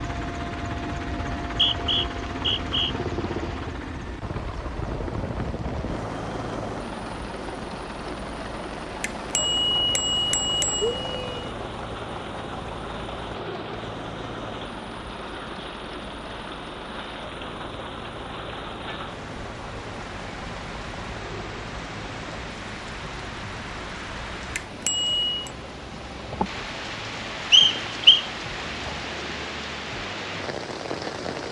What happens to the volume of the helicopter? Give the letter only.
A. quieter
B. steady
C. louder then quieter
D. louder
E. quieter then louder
A.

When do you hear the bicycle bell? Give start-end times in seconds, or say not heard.
9.0-11.5, 24.6-25.5.